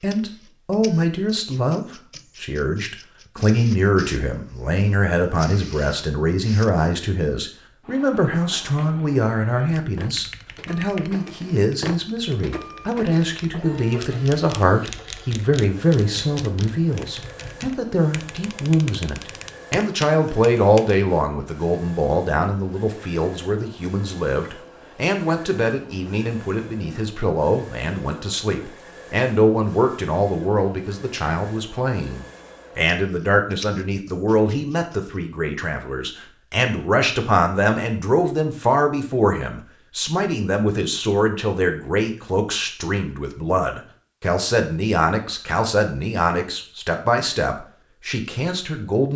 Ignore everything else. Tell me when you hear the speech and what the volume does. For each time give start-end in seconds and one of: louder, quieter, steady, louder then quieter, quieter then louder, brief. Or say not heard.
0.0-49.1 steady.